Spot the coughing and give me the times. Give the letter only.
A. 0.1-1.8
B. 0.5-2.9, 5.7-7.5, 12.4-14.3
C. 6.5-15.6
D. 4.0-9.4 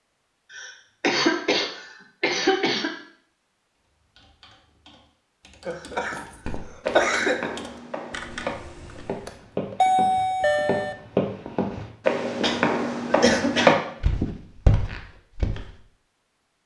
B.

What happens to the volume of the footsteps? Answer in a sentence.
The loudness of the footsteps goes up.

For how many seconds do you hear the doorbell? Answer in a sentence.
The doorbell can be heard for 2 seconds in total.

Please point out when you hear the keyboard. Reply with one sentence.
You can hear the keyboard from 4.0 to 9.4 s.